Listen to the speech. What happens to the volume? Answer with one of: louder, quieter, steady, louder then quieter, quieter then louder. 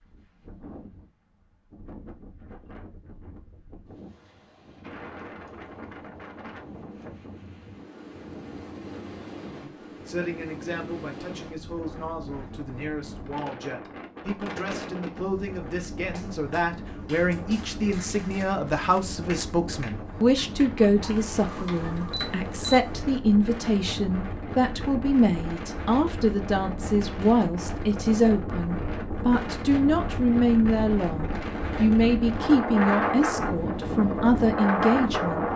louder.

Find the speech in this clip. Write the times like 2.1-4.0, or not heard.
9.6-35.5.